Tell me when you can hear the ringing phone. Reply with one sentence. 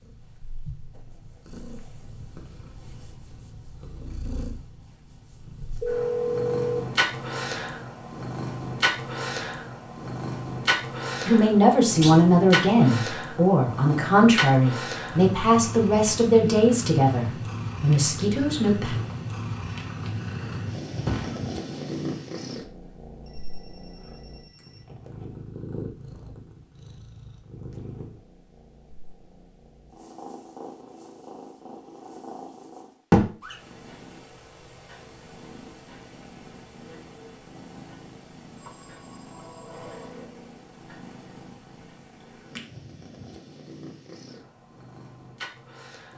You can hear the ringing phone from 5.8 to 6.8 s, from 23.2 to 24.9 s and from 38.5 to 40.0 s.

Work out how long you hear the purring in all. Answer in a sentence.
You can hear the purring for 46 seconds altogether.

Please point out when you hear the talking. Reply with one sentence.
You can hear the talking from 11.2 to 18.9 s.